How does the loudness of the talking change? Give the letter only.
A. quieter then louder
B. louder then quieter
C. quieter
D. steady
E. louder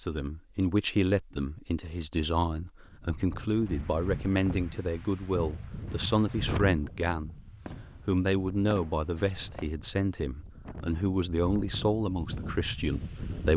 D.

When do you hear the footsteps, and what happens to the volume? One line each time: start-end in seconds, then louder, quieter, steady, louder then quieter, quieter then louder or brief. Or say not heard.
not heard.